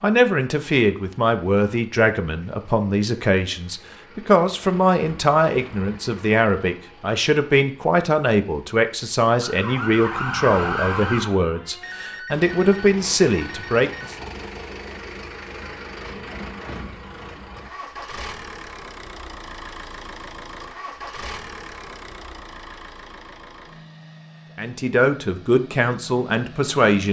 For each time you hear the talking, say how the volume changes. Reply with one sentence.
You can hear the talking from 0.0 to 14.2 s, at a steady volume; and briefly from 24.6 to 27.0 s.